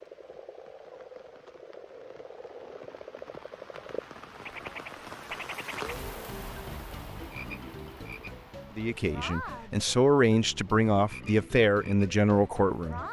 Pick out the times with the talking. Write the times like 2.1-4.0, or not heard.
8.8-13.0.